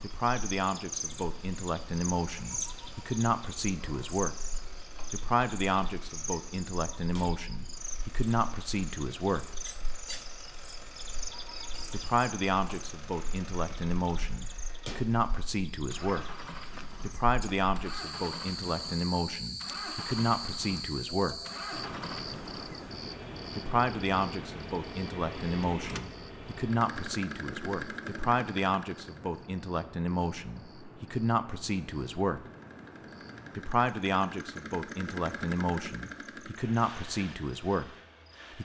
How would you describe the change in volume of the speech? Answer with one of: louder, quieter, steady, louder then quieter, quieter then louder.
steady.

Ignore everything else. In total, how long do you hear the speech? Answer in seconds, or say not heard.
31 s.